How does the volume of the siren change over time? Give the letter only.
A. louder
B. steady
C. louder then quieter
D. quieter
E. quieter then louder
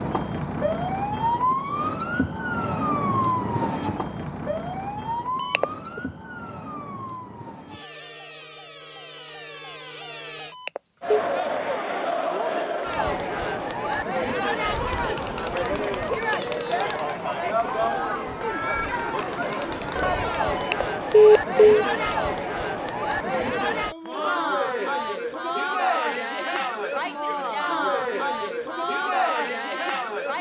D.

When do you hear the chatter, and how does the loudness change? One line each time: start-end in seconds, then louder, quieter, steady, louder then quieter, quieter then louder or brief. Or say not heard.
11.0-30.3 steady.